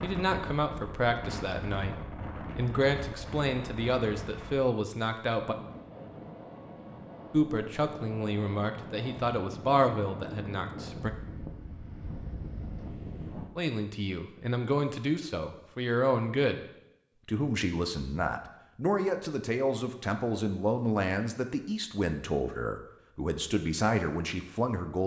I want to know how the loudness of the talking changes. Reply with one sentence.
The volume of the talking stays about the same.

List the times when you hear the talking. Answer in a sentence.
You can hear the talking from 0.0 to 5.5 s, from 7.3 to 11.1 s, from 13.6 to 16.6 s and from 17.2 to 25.0 s.